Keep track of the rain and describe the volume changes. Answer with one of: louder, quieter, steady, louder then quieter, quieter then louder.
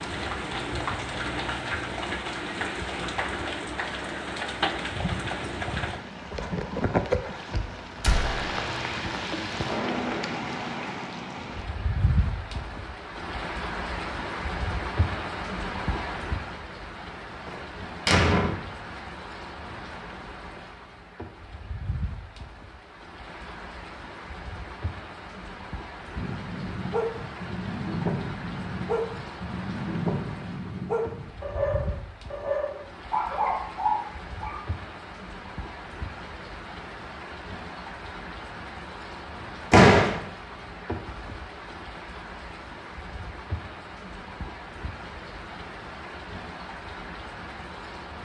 quieter.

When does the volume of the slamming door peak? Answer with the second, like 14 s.
40 s.